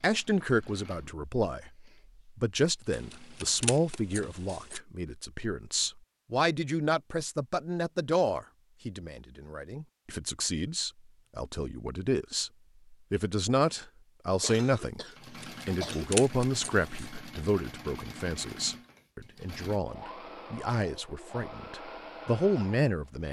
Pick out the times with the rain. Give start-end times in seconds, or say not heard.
not heard.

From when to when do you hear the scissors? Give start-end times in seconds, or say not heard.
2.9-4.8, 15.4-16.9.